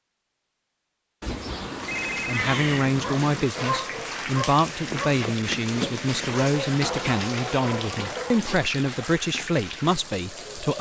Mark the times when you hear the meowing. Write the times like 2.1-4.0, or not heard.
1.2-3.0.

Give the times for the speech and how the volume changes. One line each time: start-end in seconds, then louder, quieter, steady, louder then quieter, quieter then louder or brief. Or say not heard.
2.2-10.7 steady.